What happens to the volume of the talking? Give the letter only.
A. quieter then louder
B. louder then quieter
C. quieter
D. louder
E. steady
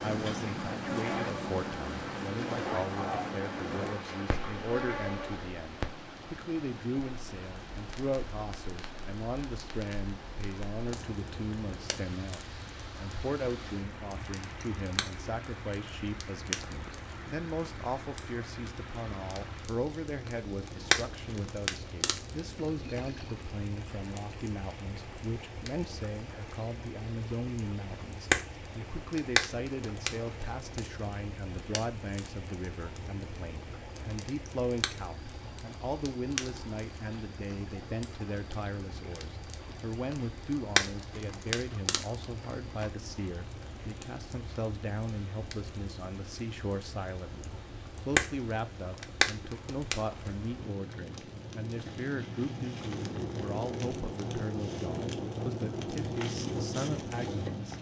E.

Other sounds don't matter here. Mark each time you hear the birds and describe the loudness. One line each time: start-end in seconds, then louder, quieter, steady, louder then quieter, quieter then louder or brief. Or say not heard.
not heard.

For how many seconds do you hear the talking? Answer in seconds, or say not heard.
58 s.